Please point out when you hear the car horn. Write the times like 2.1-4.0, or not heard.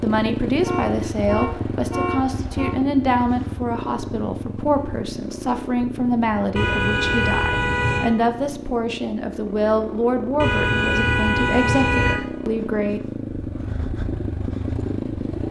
0.6-2.8, 6.5-8.1, 10.4-12.2.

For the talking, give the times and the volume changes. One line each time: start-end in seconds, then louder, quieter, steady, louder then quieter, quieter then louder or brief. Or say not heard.
0.0-13.0 steady.